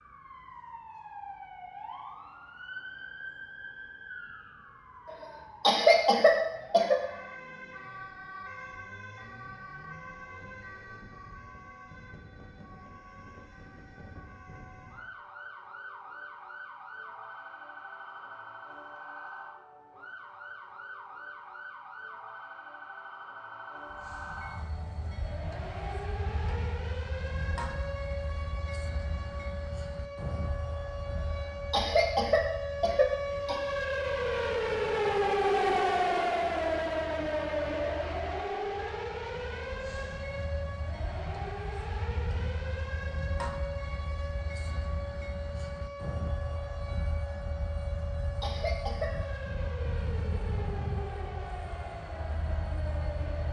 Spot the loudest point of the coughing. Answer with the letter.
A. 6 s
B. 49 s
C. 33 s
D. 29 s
A.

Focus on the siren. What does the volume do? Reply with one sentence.
The loudness of the siren goes up, then down.